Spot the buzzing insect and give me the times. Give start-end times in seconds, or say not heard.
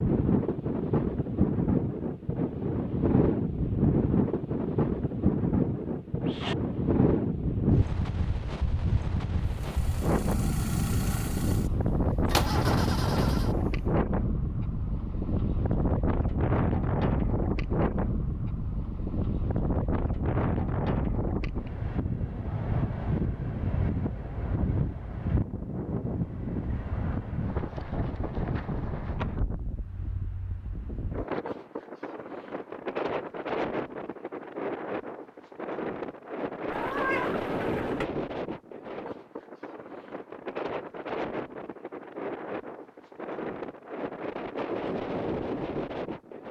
not heard.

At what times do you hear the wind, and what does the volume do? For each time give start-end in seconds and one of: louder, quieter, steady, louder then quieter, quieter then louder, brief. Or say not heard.
0.0-46.4 quieter.